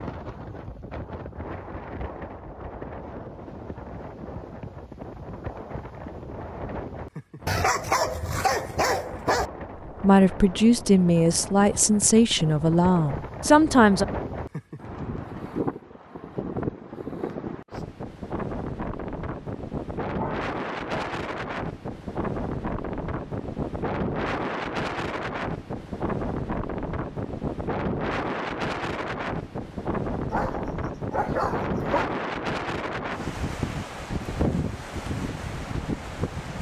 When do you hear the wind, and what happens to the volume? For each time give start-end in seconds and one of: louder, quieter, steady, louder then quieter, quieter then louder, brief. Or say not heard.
0.0-36.5 louder.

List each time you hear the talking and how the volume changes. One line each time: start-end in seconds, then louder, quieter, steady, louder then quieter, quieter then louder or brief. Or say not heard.
10.0-14.1 steady.